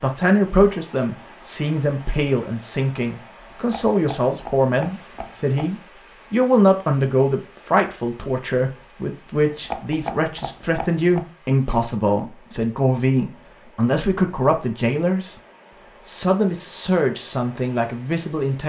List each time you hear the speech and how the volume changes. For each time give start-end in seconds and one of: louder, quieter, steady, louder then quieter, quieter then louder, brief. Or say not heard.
0.0-15.3 steady
16.1-18.6 brief.